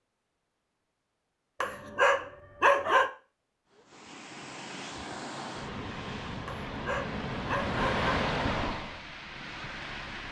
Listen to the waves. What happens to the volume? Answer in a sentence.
The loudness of the waves goes up, then down.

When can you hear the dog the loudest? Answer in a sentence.
The volume of the dog peaks at 3 seconds.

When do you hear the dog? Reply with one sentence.
You can hear the dog from 1.6 to 3.1 s and from 6.5 to 8.1 s.